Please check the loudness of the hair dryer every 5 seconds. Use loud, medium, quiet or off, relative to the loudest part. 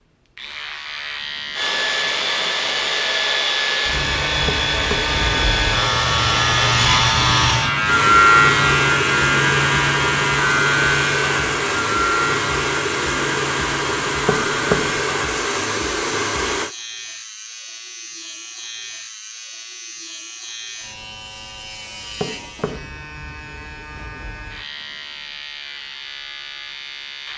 loud, loud, loud, loud, off, off.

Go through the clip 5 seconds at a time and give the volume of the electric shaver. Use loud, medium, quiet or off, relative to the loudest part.
medium, loud, medium, quiet, quiet, quiet.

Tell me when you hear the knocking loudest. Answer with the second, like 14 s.
15 s.